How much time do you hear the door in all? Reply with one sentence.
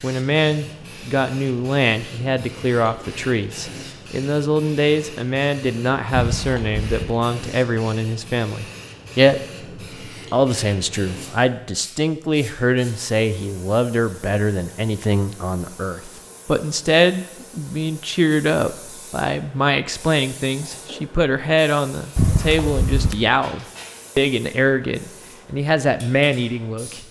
You can hear the door for 2 seconds altogether.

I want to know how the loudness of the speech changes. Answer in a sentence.
The volume of the speech stays about the same.